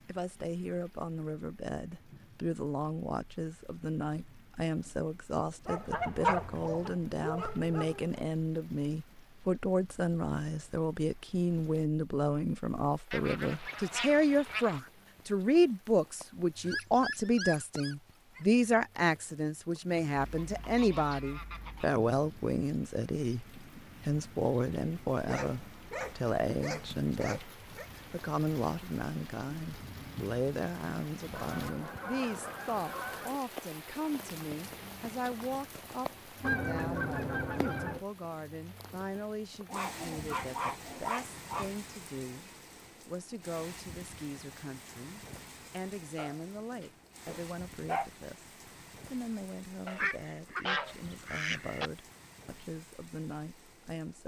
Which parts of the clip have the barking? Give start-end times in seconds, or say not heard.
5.7-8.2, 16.6-18.4, 25.2-27.9, 39.7-41.7, 46.1-48.1.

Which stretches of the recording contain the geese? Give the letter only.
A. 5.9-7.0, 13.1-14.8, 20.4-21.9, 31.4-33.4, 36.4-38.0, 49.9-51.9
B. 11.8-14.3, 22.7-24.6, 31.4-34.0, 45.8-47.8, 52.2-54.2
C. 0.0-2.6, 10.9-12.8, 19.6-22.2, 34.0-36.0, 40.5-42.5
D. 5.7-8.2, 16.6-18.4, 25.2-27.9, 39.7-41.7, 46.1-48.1
A.